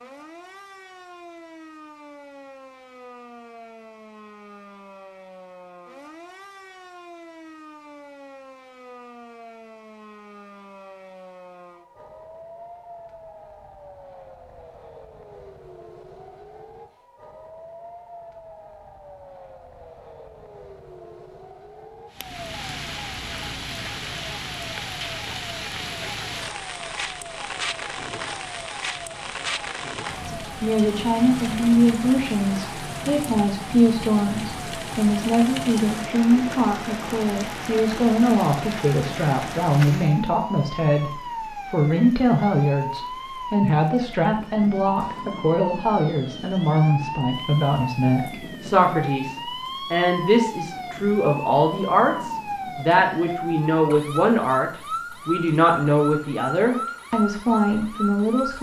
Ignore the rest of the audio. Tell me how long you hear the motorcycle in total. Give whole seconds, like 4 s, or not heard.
not heard.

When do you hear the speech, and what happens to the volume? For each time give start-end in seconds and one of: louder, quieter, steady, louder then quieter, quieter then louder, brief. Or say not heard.
30.4-58.5 steady.